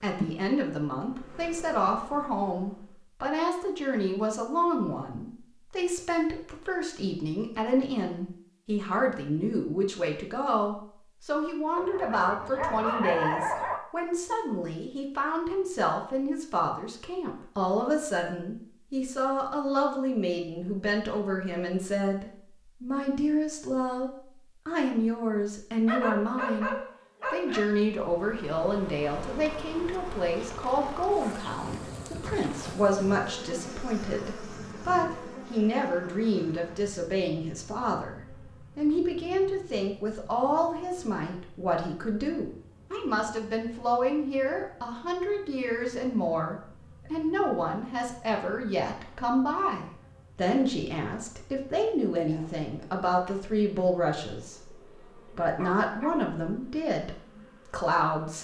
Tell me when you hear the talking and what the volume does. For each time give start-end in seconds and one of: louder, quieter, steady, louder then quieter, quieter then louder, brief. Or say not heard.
0.0-58.3 steady.